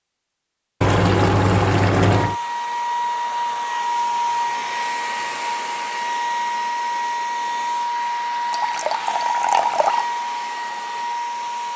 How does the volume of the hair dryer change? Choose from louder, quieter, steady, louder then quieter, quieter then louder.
steady.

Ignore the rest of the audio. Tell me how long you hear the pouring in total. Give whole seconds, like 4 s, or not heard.
3 s.